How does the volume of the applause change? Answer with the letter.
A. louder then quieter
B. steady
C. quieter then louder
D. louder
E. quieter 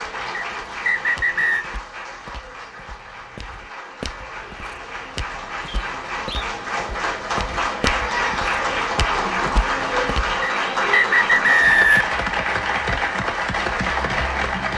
D.